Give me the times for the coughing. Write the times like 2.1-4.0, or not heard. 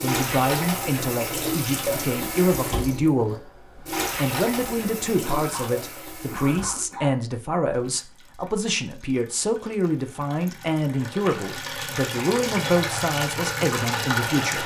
5.2-7.2.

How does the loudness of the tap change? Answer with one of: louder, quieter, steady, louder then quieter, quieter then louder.
quieter then louder.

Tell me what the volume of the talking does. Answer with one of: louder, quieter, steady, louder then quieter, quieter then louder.
steady.